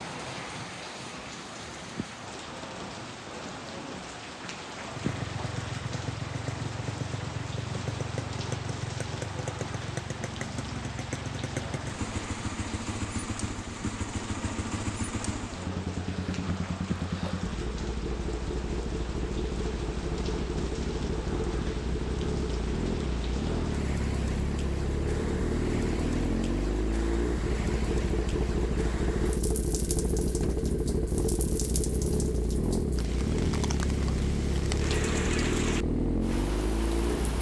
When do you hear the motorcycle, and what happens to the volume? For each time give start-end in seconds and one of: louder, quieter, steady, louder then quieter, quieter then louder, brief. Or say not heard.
4.8-37.3 louder.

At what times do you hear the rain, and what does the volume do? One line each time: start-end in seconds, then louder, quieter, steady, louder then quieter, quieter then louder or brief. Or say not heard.
0.0-37.3 steady.